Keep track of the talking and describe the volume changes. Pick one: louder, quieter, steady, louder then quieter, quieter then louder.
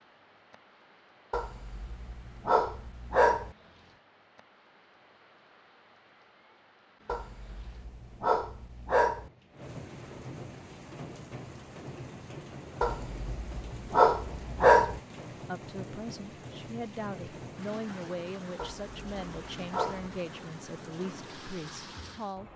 steady.